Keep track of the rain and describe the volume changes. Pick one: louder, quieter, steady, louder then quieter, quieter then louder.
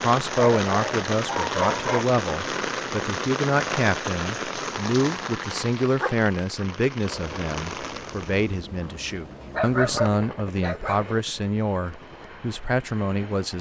quieter.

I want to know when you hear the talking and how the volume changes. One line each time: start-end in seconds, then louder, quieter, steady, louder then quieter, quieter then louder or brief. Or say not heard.
0.0-13.5 steady.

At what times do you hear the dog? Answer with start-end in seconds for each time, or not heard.
0.3-2.0, 6.0-6.7, 9.5-11.1.